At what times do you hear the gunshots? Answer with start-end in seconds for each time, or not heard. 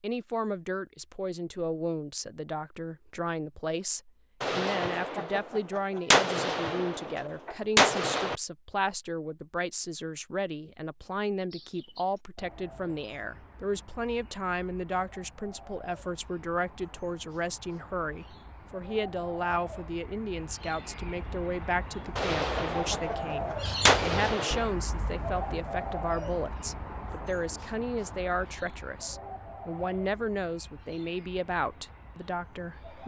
4.4-8.3, 22.1-24.6.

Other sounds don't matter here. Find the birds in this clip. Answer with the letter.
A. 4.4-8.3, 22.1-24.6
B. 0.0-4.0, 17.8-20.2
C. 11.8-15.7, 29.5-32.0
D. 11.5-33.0
D.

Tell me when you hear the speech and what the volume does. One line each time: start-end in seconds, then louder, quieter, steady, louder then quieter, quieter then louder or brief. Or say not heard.
0.0-33.0 steady.